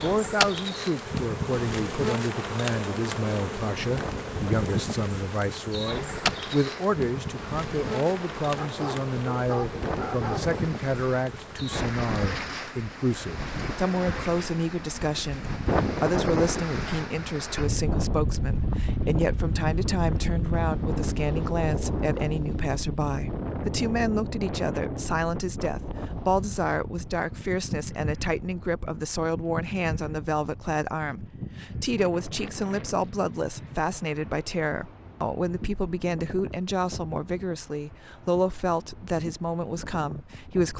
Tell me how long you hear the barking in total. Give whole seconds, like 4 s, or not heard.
2 s.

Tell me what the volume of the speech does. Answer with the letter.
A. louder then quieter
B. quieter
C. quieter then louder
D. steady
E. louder
D.